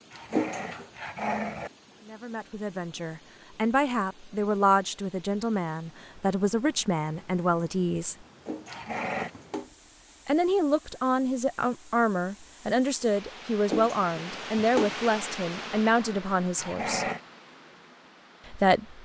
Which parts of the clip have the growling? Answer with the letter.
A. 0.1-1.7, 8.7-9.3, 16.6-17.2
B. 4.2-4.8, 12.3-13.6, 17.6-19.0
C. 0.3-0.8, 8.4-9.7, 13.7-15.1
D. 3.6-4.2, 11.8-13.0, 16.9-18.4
A.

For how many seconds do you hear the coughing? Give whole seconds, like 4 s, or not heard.
3 s.